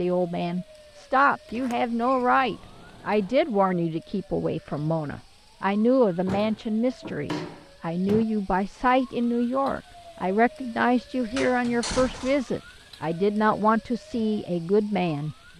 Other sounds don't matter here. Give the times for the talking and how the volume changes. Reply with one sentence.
The talking can be heard from 0.0 to 15.3 s, at a steady volume.